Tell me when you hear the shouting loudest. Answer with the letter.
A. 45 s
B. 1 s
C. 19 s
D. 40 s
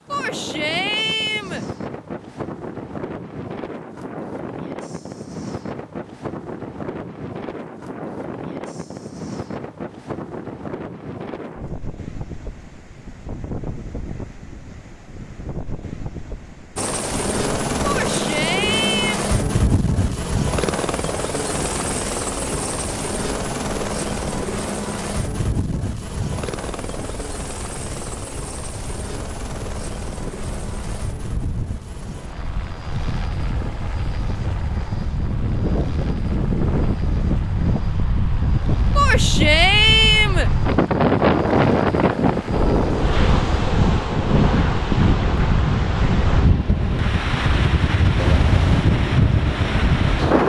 D.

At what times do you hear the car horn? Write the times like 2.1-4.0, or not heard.
48.1-48.9.